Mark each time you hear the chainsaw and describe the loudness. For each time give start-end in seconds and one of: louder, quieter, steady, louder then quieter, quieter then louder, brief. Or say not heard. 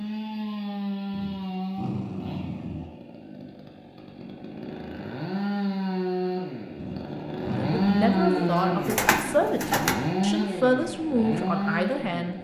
0.0-12.3 quieter then louder.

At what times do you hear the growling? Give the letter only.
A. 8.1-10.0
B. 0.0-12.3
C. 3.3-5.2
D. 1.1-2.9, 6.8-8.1
D.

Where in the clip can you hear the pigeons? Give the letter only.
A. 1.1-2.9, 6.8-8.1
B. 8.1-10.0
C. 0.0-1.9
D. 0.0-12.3
B.